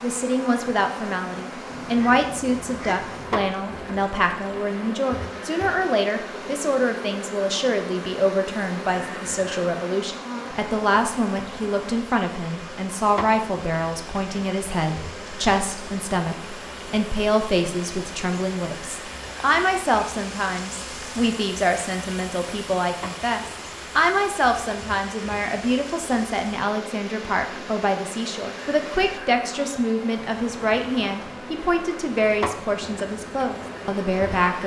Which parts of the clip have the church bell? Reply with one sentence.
The church bell can't be heard in this clip.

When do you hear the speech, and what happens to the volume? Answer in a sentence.
The speech can be heard from 0.0 to 34.6 s, at a steady volume.